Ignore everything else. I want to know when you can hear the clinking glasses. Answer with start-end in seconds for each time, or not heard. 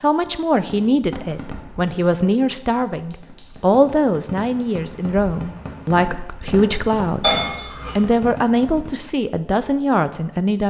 3.1-3.6, 7.2-8.0.